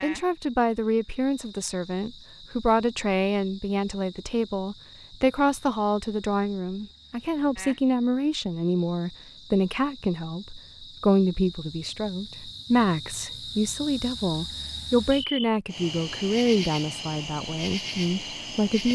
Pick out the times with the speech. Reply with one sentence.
The speech can be heard from 0.0 to 18.9 s.